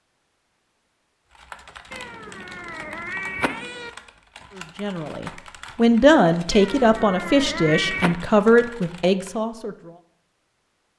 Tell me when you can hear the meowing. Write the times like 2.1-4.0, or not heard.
1.9-3.9, 6.5-8.2.